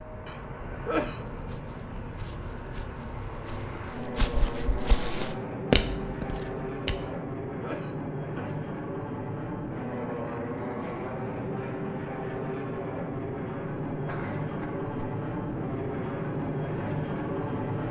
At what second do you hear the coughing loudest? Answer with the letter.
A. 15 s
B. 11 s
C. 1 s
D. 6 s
C.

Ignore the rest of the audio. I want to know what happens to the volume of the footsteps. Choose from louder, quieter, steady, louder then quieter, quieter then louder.
louder.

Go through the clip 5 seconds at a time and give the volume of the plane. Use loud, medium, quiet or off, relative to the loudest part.
medium, loud, loud, loud.